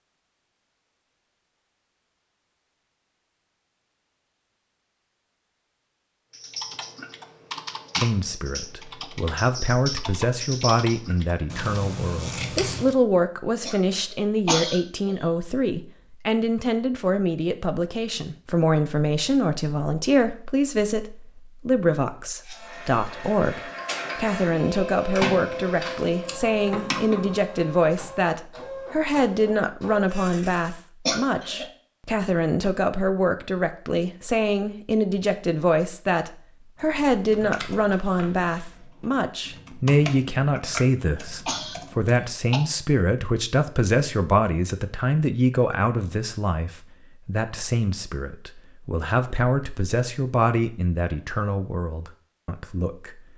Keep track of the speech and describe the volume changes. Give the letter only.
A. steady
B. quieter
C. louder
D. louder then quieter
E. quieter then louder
A.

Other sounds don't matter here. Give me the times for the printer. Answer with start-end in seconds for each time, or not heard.
22.4-30.8.